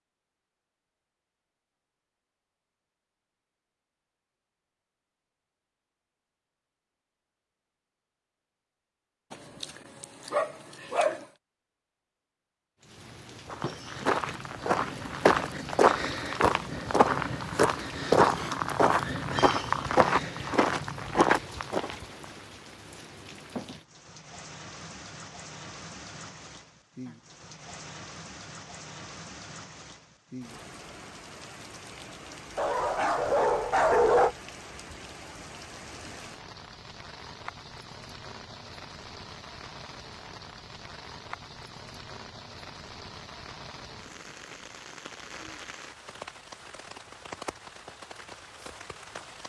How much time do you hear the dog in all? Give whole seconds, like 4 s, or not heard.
4 s.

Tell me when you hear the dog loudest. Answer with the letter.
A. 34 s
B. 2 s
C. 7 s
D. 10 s
A.